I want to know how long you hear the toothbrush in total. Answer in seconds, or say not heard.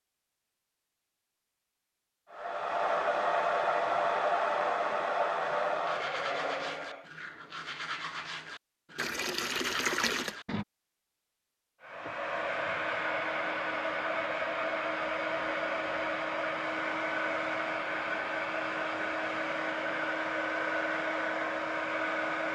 5 s.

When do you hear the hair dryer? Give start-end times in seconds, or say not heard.
2.3-7.1, 11.8-22.5.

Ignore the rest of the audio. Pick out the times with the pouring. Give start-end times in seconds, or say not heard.
8.9-10.3.